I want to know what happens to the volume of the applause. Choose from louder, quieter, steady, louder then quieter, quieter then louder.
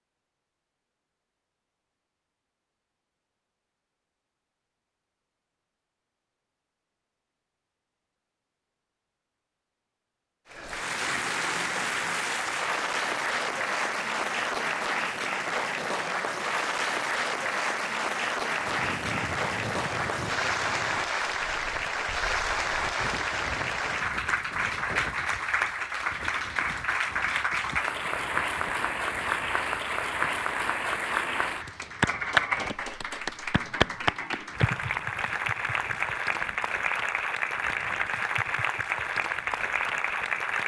steady.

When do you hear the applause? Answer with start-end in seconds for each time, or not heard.
10.5-40.6.